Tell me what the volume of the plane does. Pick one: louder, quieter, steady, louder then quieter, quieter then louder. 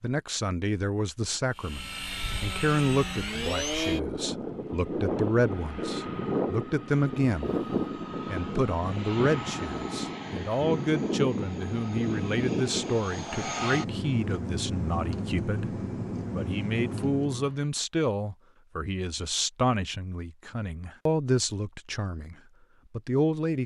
steady.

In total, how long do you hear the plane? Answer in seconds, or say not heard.
16 s.